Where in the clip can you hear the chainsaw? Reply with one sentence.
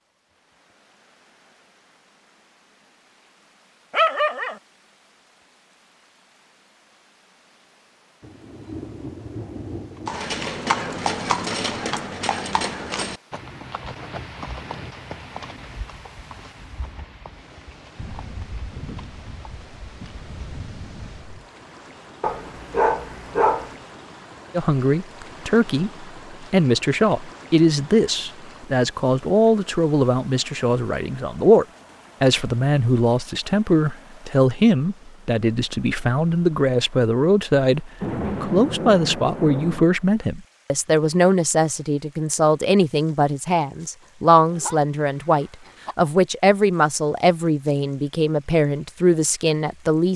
You can't hear the chainsaw here.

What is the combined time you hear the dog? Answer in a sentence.
You can hear the dog for 4 seconds altogether.